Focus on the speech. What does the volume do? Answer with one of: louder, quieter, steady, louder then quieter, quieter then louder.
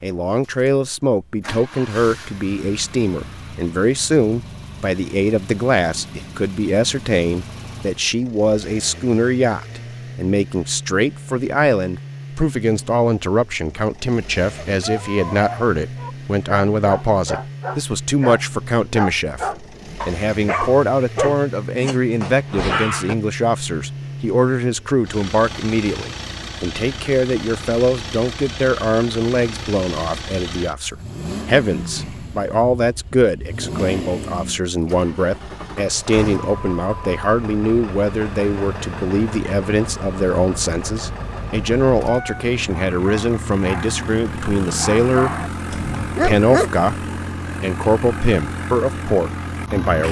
steady.